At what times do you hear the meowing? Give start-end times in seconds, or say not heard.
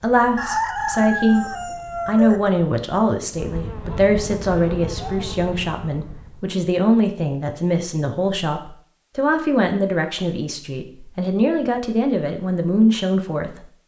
not heard.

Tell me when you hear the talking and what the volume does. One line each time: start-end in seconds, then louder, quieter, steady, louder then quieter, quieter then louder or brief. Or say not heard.
0.0-13.7 steady.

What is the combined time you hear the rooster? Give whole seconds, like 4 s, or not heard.
2 s.